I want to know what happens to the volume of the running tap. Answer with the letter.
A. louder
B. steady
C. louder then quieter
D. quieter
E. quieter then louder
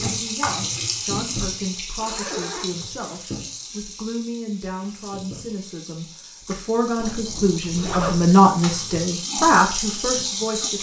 E.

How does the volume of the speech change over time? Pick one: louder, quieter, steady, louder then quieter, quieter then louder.
louder.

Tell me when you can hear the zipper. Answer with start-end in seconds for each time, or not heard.
2.0-3.1, 7.0-8.3.